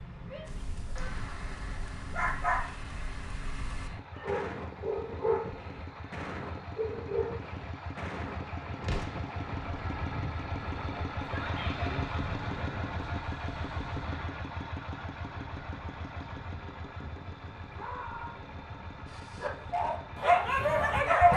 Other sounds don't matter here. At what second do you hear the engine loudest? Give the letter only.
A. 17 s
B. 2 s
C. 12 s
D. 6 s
C.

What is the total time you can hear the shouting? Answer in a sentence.
You can hear the shouting for 2 seconds altogether.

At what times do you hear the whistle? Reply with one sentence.
The whistle can't be heard in this clip.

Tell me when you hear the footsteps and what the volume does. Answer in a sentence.
The footsteps can't be heard in this clip.